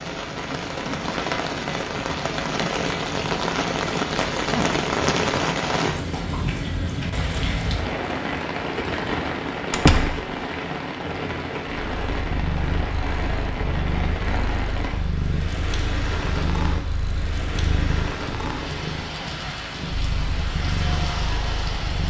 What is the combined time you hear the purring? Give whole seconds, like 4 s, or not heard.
10 s.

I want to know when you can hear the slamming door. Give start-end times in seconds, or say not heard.
9.7-10.2.